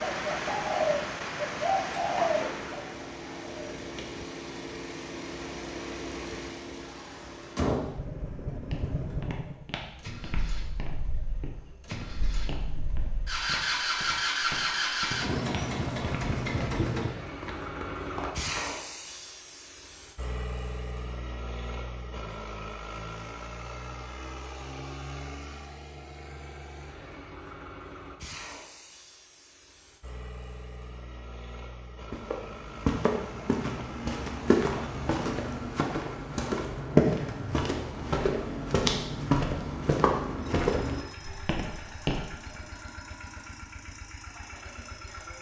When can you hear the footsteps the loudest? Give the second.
37 s.